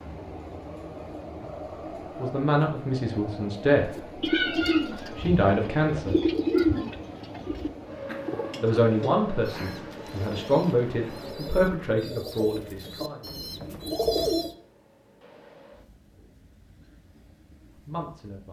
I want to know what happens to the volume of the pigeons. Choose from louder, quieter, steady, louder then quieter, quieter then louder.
quieter then louder.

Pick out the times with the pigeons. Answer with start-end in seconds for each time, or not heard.
4.0-14.5.